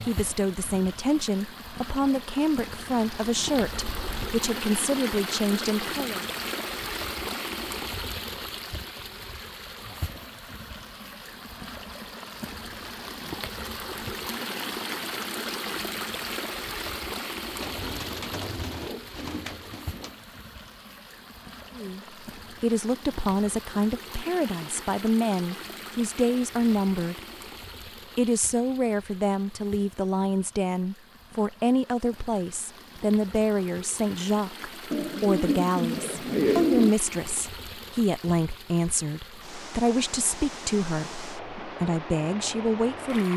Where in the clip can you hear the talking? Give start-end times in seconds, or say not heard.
0.0-6.2, 21.8-27.2, 28.1-43.3.